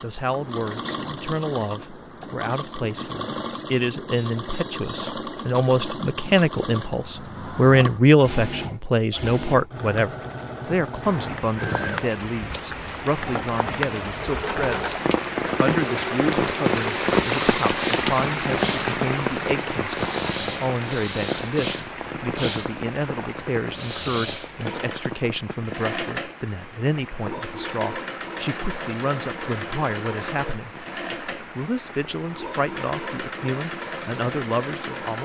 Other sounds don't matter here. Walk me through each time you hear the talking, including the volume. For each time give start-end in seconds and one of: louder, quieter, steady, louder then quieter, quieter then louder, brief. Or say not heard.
0.0-14.9 louder then quieter
15.6-35.1 steady.